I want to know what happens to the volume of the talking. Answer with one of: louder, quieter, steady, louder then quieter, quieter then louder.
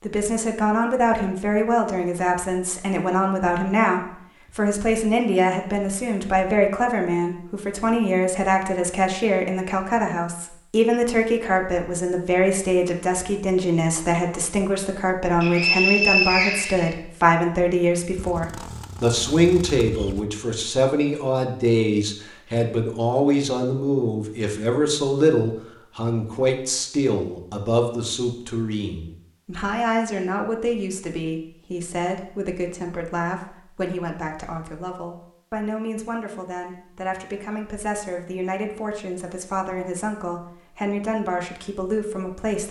quieter.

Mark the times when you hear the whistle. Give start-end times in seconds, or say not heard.
15.4-16.9.